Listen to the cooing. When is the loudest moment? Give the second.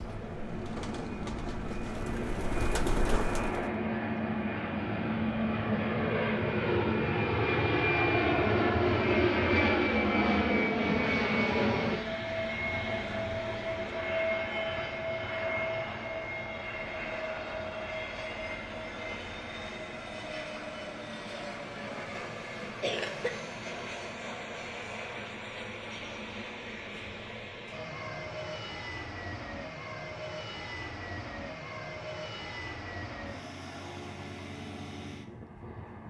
3 s.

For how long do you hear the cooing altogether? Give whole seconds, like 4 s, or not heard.
4 s.